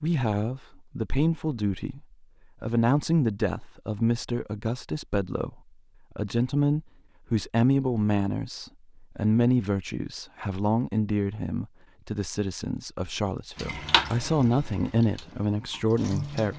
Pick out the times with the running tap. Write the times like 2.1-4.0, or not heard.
13.6-16.5.